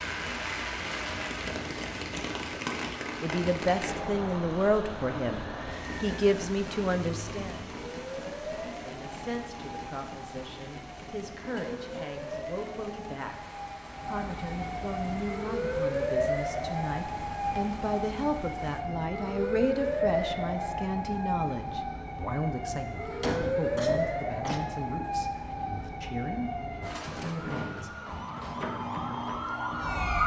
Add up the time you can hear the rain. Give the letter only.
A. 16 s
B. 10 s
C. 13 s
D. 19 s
D.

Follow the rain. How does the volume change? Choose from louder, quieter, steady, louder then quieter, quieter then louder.
quieter.